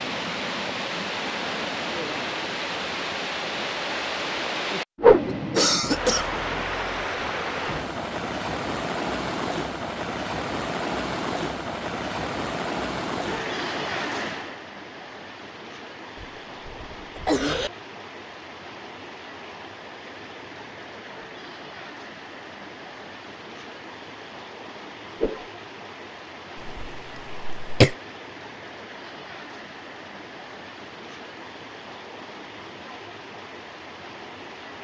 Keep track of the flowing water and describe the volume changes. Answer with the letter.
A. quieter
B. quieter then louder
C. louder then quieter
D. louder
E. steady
A.